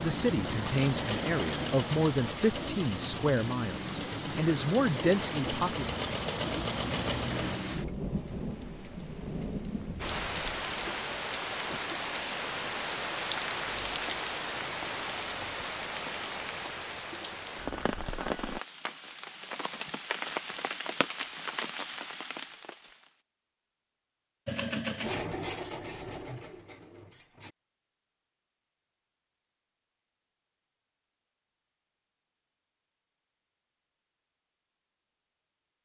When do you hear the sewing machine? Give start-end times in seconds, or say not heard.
0.0-7.6, 24.4-27.6.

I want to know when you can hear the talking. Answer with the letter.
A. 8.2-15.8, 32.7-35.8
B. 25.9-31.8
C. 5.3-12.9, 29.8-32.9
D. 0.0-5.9
D.